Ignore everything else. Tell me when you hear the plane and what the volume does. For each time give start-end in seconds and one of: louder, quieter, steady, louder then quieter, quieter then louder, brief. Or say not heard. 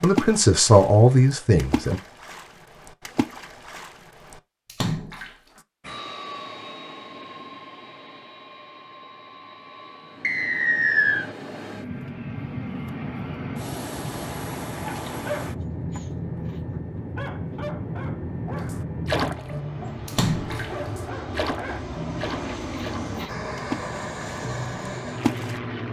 5.8-25.8 louder.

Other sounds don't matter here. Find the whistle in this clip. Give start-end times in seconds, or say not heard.
10.2-11.2.